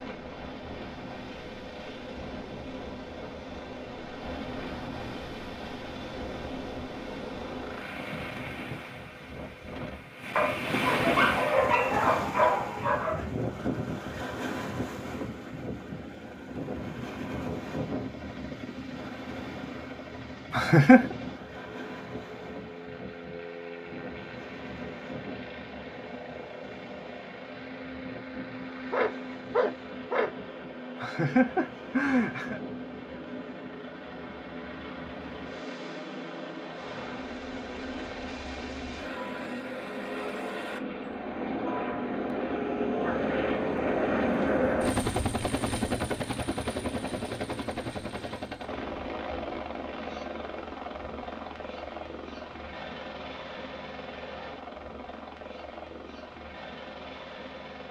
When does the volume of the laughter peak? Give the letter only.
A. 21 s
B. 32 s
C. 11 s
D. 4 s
A.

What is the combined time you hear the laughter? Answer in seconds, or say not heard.
2 s.